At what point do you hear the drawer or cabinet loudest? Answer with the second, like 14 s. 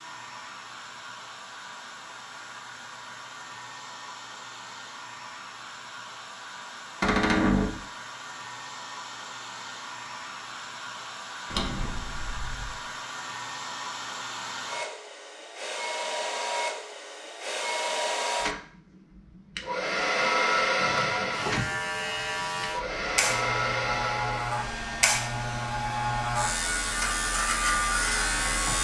7 s.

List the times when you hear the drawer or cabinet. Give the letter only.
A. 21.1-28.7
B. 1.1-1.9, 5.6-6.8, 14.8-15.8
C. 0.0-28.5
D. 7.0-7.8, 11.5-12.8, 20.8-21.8
D.